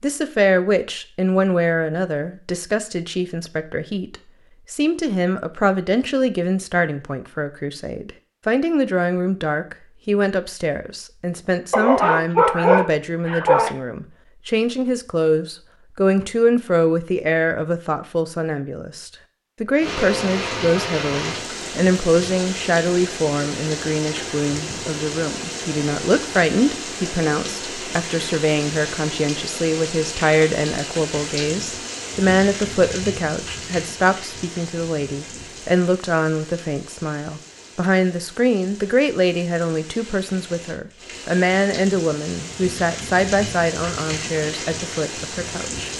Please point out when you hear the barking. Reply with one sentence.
You can hear the barking from 11.7 to 13.7 s.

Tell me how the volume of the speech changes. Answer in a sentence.
The loudness of the speech stays about the same.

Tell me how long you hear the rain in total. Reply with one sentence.
The rain can be heard for 26 seconds in total.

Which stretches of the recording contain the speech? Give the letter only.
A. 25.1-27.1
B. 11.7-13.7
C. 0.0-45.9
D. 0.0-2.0
C.